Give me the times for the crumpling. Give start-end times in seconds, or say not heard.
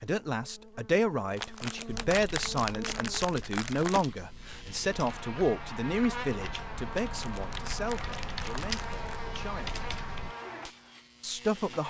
1.4-4.0, 7.0-9.0.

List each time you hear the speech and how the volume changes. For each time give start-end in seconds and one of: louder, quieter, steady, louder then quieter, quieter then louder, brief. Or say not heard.
0.0-9.8 quieter
11.2-11.8 brief.